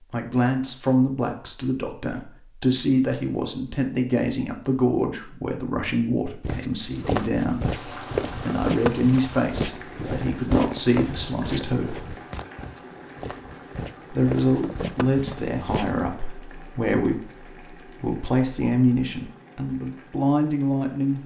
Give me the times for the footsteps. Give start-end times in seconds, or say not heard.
6.4-16.2.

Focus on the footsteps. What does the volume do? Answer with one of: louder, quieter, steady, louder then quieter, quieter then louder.
quieter then louder.